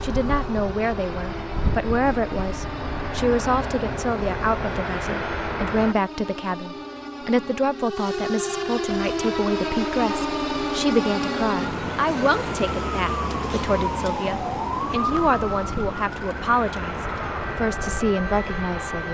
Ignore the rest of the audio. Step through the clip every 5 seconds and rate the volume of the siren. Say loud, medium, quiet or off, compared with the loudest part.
medium, loud, loud, medium.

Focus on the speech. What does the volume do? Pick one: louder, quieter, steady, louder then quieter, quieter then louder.
steady.